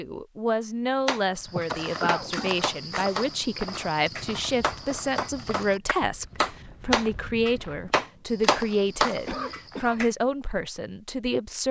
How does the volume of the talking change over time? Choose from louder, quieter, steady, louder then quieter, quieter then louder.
steady.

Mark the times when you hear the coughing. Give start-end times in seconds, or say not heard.
1.4-2.6, 9.2-10.1.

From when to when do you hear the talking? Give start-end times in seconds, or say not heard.
0.0-11.6.